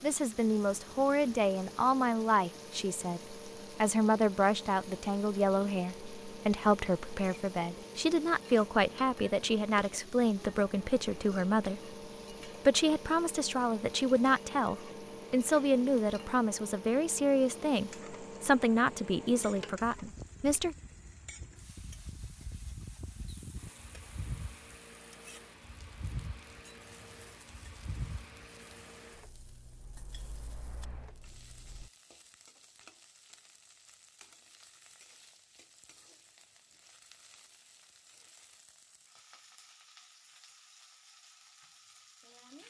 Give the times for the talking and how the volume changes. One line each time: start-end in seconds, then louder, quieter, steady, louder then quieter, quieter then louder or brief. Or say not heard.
0.0-20.8 steady.